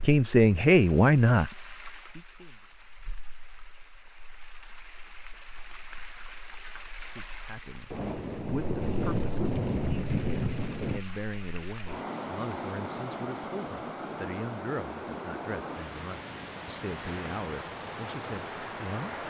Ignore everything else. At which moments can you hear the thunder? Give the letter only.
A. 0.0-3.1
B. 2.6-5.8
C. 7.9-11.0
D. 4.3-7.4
C.